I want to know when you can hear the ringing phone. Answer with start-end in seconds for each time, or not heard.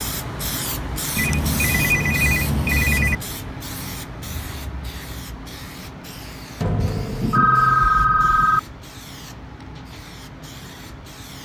1.1-3.2, 6.6-8.6.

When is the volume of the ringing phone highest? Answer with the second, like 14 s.
8 s.